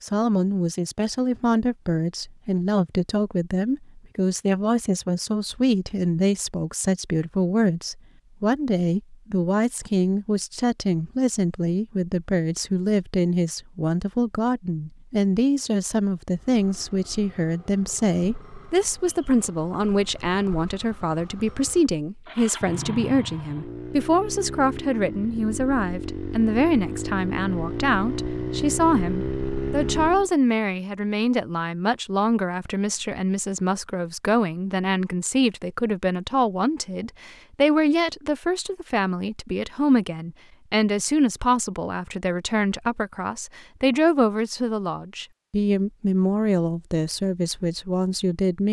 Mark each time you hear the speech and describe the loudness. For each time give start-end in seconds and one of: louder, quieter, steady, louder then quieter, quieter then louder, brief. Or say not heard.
0.0-48.6 steady.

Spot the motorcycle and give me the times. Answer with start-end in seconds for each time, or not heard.
16.4-30.3.